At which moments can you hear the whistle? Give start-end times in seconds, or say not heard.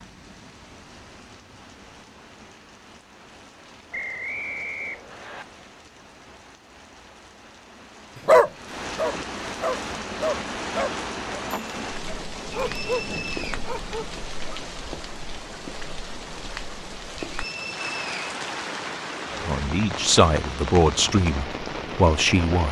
3.9-5.5, 12.7-13.6, 17.4-18.4.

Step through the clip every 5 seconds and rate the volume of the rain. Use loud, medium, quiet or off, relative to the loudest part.
quiet, medium, loud, loud, loud.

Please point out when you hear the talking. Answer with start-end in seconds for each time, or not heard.
19.4-22.6.